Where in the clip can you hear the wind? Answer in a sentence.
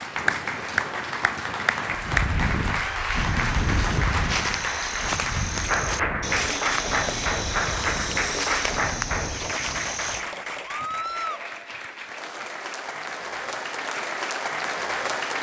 The wind can be heard from 0.0 to 9.9 s.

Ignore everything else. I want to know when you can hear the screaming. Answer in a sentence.
The screaming can be heard from 2.8 to 3.4 s and from 10.7 to 11.4 s.